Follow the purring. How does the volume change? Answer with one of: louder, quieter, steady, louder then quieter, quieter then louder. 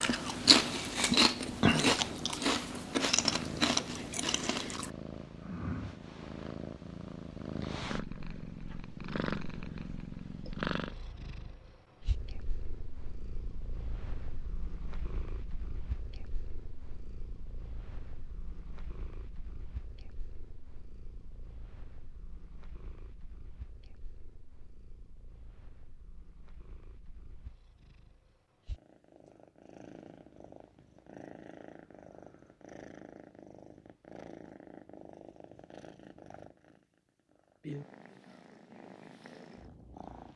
quieter then louder.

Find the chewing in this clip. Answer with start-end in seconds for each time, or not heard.
0.0-4.9.